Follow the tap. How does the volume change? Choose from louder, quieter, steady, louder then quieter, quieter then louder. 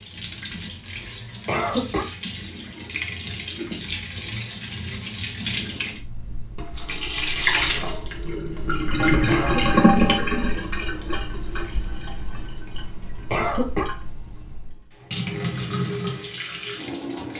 louder then quieter.